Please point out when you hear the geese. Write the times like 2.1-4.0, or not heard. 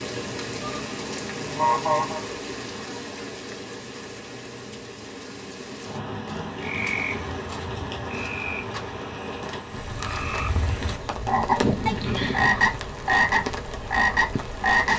0.6-2.2, 11.6-12.8.